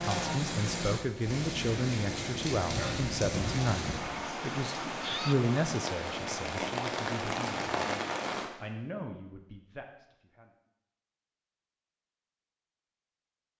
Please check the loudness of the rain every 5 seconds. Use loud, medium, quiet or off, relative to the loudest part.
loud, loud, off.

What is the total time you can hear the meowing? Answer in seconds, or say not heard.
2 s.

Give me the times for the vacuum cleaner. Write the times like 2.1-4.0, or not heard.
not heard.